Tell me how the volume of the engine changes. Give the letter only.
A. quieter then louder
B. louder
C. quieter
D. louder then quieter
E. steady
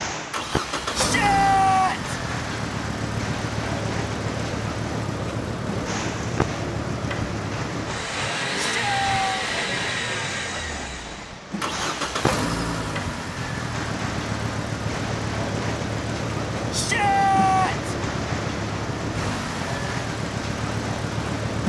E.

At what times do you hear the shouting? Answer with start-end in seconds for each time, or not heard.
0.9-2.1, 8.6-9.5, 16.7-17.9.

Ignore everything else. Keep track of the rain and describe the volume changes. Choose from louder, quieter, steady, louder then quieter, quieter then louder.
steady.